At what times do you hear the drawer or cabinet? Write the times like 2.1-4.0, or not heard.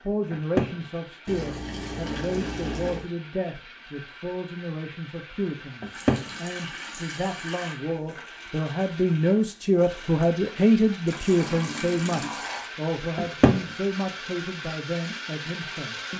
0.3-0.8, 5.8-6.2, 13.2-13.6.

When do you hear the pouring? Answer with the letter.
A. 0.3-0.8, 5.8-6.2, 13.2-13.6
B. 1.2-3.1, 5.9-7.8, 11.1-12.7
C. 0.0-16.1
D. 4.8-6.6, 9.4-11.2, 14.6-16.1
B.